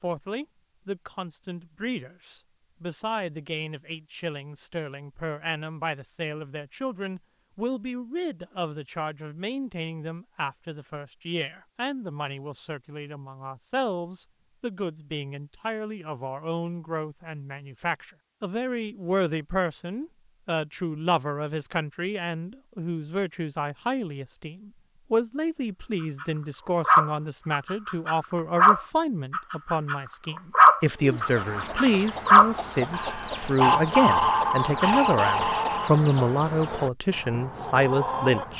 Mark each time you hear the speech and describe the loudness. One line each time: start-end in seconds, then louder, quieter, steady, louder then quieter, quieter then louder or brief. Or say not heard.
0.0-38.5 louder.